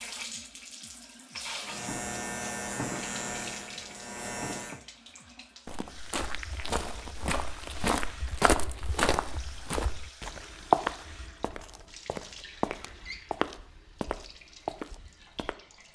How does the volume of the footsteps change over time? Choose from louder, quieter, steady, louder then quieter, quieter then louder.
louder then quieter.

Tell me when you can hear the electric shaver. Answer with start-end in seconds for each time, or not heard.
1.6-4.8.